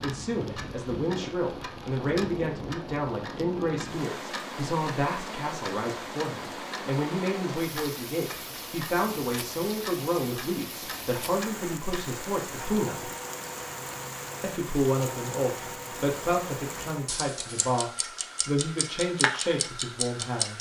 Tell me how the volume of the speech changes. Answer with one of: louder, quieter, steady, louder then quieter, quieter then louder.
steady.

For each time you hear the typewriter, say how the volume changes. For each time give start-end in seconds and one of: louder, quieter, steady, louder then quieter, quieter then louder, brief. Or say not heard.
not heard.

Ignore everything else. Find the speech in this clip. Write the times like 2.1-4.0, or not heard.
0.0-13.1, 14.4-20.5.